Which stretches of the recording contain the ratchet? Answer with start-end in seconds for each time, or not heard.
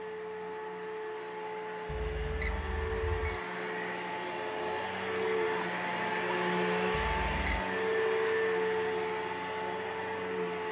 not heard.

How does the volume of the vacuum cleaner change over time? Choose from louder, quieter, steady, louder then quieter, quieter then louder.
louder.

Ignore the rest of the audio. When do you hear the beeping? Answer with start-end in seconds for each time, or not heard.
1.9-3.4, 7.0-7.7.